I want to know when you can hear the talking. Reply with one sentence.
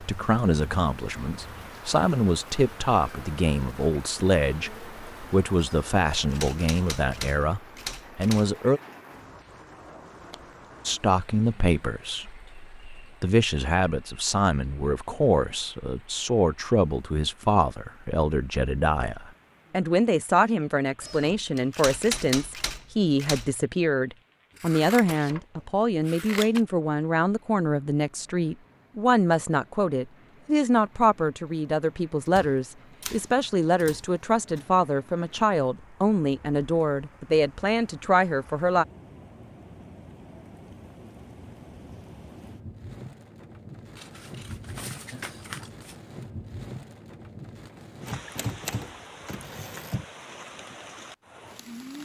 The talking can be heard from 0.0 to 8.8 s and from 10.8 to 38.9 s.